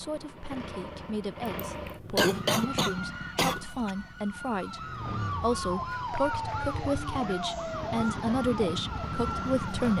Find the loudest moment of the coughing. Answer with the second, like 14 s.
2 s.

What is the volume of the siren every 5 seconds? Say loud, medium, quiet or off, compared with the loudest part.
medium, loud.